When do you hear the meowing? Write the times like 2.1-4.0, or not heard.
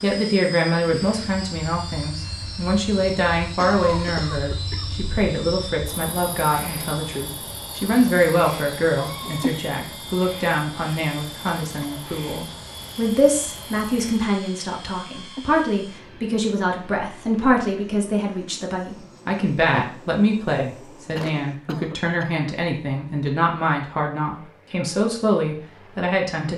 8.9-9.8, 15.1-15.7.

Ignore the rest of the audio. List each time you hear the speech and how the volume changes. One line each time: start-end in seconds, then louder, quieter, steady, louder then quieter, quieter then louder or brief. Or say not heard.
0.0-26.5 steady.